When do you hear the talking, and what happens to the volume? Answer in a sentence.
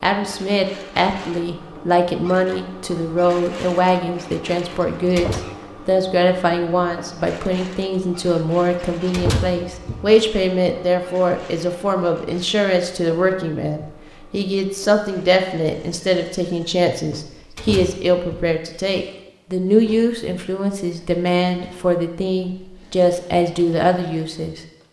The talking can be heard from 0.0 to 24.6 s, at a steady volume.